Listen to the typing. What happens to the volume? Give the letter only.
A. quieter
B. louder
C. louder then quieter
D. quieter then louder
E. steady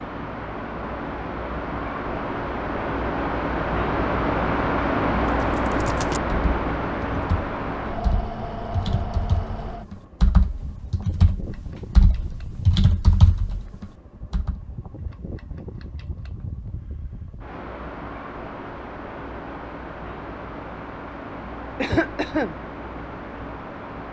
B.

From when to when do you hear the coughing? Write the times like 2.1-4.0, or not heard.
21.8-22.6.